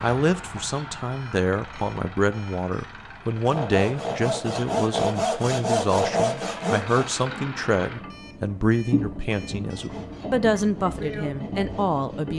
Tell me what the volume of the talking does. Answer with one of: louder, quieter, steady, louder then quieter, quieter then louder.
steady.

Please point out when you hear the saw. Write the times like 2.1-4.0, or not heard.
3.4-7.1, 9.6-12.3.